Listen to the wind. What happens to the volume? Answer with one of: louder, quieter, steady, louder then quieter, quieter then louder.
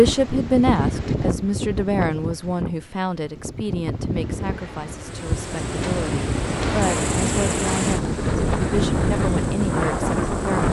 quieter then louder.